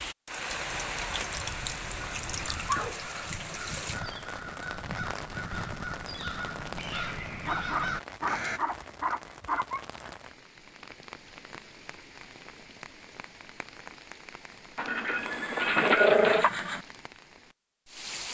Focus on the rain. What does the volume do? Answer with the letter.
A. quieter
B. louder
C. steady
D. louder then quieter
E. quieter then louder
A.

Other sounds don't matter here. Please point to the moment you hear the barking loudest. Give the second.
16 s.